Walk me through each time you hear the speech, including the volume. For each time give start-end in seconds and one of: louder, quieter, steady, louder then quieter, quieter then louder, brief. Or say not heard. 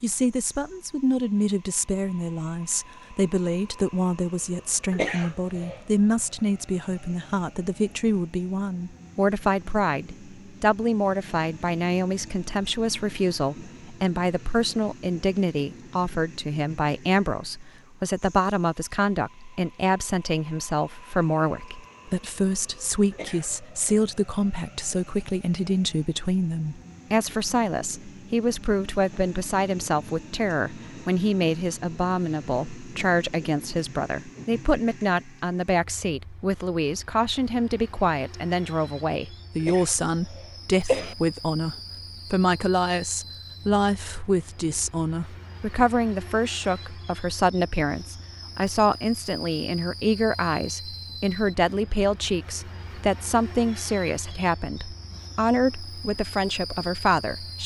0.0-57.6 steady.